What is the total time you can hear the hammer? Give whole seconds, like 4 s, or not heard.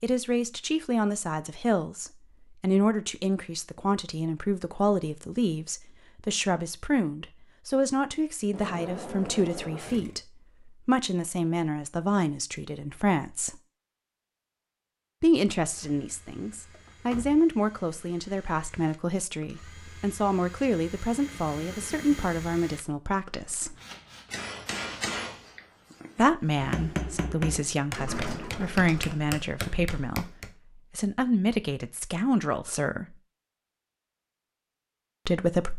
7 s.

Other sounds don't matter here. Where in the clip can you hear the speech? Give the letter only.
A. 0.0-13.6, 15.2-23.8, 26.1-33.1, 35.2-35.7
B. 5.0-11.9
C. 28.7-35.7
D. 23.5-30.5
A.